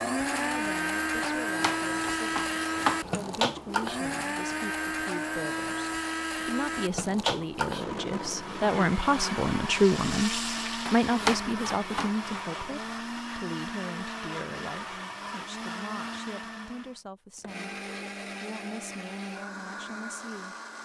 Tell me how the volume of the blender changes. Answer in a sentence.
The loudness of the blender goes down.